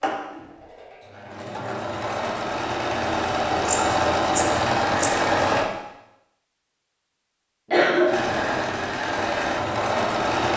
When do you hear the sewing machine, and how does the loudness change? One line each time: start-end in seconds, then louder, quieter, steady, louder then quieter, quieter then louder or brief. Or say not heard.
0.0-5.7 louder
8.1-10.5 brief.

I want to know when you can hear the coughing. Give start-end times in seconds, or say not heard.
7.7-8.6.